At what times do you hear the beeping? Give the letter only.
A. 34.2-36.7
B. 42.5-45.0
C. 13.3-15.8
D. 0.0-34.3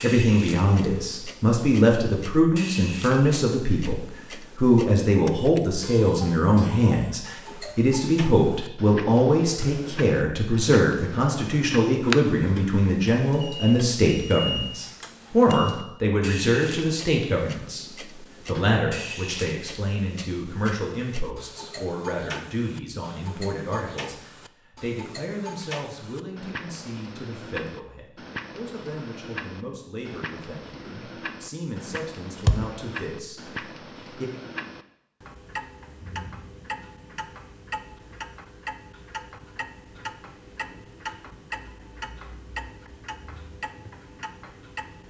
C.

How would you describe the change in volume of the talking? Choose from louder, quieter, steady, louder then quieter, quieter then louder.
quieter.